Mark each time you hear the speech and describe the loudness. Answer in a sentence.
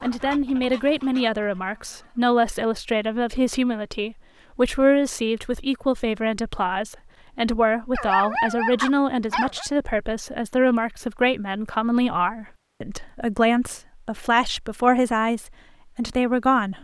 The speech can be heard from 0.0 to 16.7 s, at a steady volume.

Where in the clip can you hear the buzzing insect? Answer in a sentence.
The buzzing insect can't be heard in this clip.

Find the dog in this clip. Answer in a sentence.
You can hear the dog from 8.0 to 9.7 s.